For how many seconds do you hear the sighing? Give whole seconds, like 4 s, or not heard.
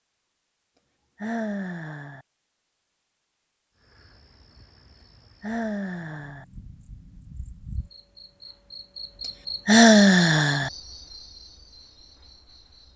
3 s.